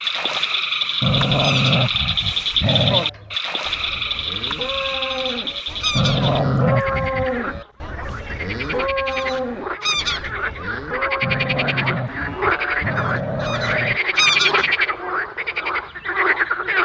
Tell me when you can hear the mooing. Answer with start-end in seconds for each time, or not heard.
3.0-12.9.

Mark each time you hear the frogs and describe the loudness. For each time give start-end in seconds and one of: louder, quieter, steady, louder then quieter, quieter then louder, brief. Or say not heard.
0.0-16.8 quieter then louder.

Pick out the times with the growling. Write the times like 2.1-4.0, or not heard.
1.0-3.1, 6.0-7.6, 11.2-14.0.